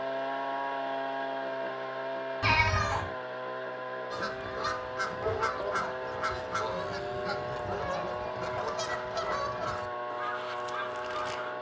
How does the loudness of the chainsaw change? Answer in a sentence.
The volume of the chainsaw stays about the same.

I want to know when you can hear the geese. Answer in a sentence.
You can hear the geese from 4.1 to 11.5 s.